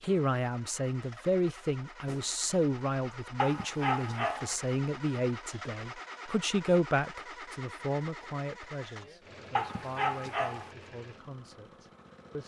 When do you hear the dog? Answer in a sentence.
You can hear the dog from 3.4 to 4.5 s and from 9.6 to 10.7 s.